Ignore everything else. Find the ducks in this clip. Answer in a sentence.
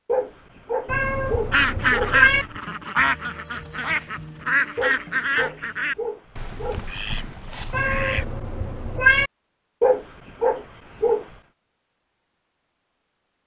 The ducks can be heard from 1.5 to 8.2 s.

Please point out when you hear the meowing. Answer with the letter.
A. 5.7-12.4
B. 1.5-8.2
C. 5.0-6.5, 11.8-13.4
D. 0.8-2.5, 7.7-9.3
D.